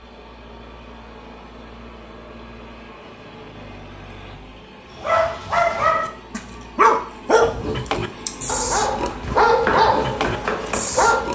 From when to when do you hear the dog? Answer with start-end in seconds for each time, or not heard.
5.0-11.3.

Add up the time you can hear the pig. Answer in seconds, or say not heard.
4 s.